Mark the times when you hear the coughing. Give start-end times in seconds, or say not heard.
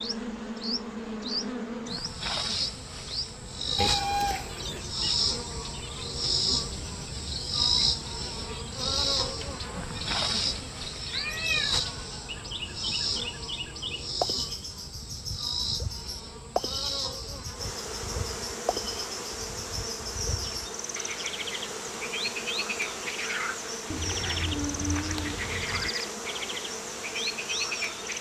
not heard.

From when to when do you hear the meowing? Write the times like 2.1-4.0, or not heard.
3.8-4.8, 11.1-11.8, 23.9-25.9.